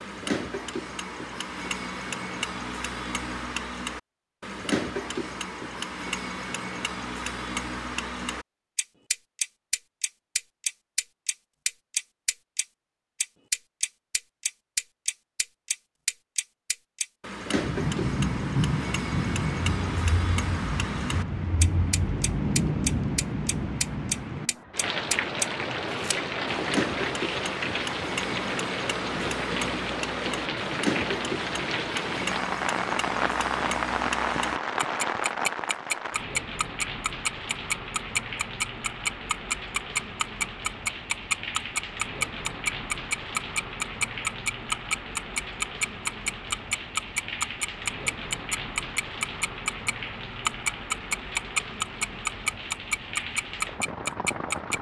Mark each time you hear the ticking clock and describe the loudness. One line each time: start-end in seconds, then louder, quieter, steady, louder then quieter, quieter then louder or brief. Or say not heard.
0.0-54.7 louder.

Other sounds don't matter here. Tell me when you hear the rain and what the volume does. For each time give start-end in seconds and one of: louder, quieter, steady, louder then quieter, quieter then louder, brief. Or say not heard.
17.4-54.7 quieter.